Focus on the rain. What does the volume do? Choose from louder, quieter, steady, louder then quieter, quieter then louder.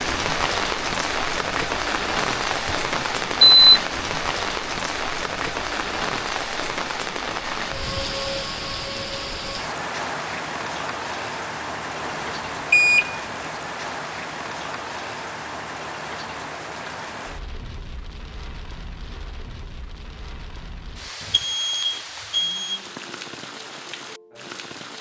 quieter.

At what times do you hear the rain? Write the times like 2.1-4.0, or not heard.
0.0-24.9.